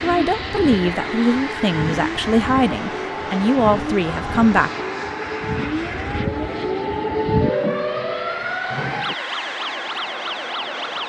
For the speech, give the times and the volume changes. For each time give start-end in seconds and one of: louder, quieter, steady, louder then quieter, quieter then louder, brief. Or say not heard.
0.0-4.7 steady.